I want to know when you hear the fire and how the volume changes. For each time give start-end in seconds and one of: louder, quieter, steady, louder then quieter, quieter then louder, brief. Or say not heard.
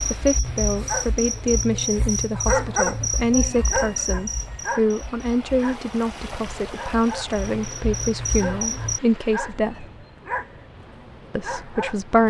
not heard.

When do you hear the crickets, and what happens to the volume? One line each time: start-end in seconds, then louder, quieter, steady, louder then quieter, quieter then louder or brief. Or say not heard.
0.0-9.0 quieter then louder.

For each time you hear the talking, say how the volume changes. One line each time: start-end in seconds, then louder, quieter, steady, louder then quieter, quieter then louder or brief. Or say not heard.
0.1-9.8 steady
11.3-12.2 brief.